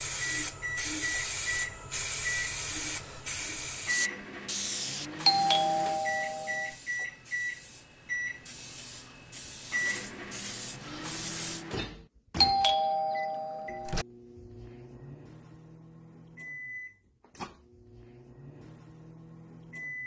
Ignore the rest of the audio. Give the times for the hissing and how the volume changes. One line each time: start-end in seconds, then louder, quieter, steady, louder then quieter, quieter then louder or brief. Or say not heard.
0.0-11.7 quieter then louder.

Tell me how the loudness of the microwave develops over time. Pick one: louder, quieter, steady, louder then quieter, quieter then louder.
quieter.